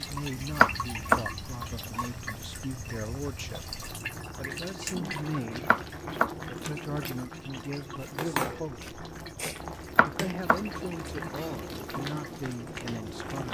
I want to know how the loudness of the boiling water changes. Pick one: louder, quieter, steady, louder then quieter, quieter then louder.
louder.